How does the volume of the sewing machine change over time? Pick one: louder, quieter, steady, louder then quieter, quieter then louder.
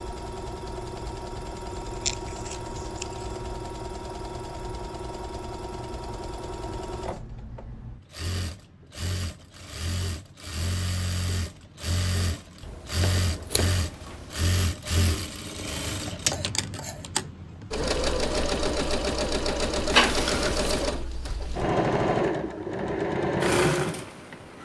louder.